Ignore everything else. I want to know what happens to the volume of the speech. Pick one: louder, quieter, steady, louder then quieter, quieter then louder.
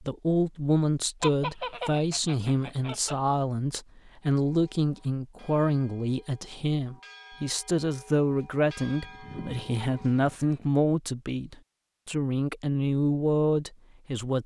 steady.